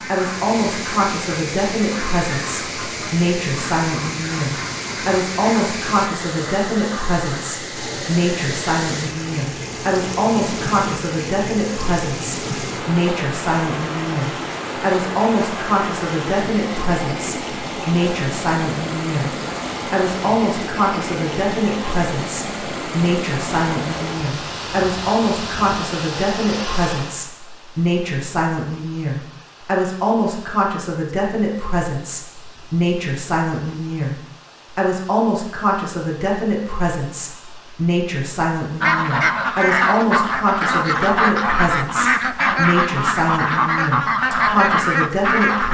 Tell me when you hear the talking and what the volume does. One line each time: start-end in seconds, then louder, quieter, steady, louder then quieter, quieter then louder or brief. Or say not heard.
0.1-45.6 steady.